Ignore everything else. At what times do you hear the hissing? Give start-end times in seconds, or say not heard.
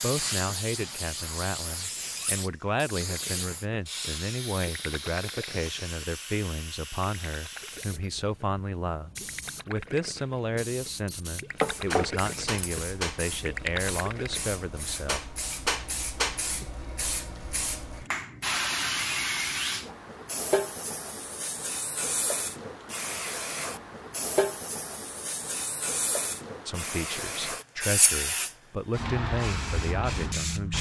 0.0-30.7.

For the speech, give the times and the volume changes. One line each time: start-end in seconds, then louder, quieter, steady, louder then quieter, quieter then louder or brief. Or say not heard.
0.0-15.2 steady
26.6-30.7 louder.